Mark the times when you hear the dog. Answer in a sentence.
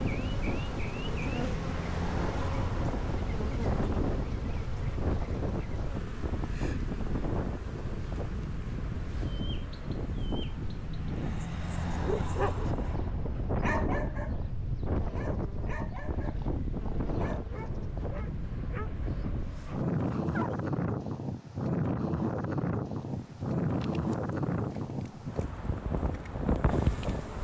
The dog can be heard from 11.2 to 12.9 s and from 13.6 to 20.6 s.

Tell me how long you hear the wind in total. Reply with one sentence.
The wind can be heard for 27 seconds in total.